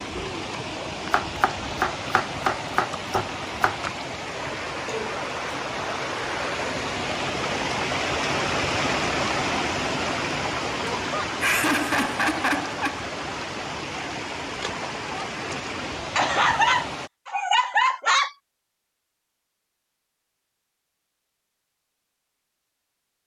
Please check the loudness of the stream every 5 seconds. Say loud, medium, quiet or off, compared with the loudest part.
medium, loud, loud, medium, off.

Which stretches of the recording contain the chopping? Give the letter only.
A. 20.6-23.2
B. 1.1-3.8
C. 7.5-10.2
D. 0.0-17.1
B.